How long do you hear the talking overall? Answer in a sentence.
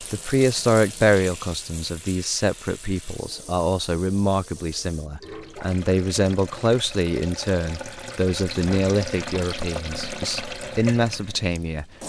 The talking can be heard for 12 seconds in total.